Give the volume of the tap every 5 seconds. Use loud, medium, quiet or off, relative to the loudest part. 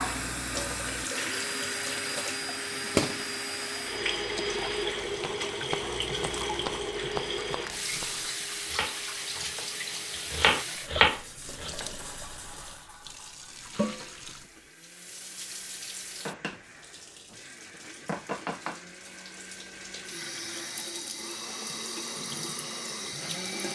loud, loud, medium, medium, medium.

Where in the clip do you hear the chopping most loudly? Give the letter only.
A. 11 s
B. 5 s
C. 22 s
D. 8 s
A.